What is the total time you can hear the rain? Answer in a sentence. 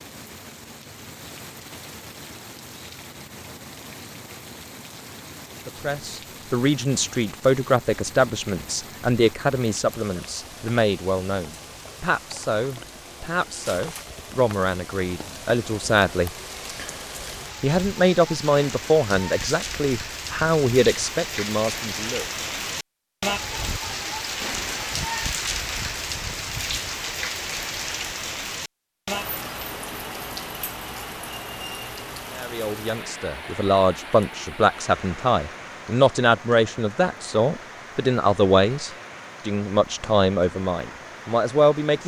The rain can be heard for 42 seconds in total.